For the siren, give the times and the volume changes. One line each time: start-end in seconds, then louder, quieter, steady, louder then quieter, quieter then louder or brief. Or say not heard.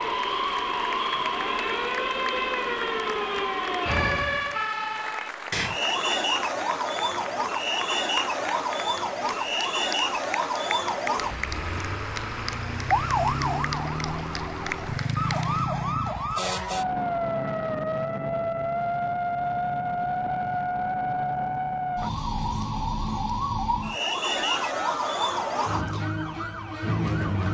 0.0-27.4 steady.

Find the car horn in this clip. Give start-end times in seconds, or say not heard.
not heard.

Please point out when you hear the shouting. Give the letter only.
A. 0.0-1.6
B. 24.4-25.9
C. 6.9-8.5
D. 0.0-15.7
B.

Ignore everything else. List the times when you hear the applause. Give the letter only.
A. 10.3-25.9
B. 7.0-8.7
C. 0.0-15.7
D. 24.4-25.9
C.